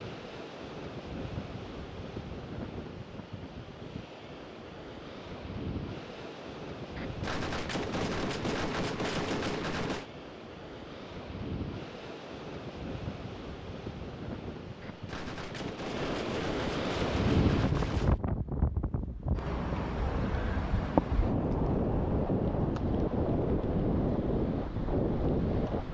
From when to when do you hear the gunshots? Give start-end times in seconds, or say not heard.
7.0-10.1, 14.8-18.2.